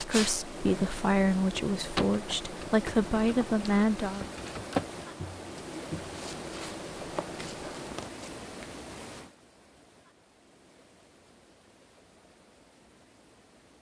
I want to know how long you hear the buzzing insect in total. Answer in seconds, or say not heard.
9 s.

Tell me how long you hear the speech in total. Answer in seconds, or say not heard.
4 s.